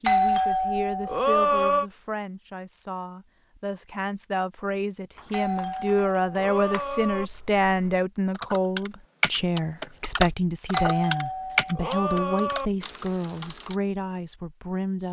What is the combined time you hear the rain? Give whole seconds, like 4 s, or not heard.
not heard.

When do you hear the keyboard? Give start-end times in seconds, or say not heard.
5.2-13.8.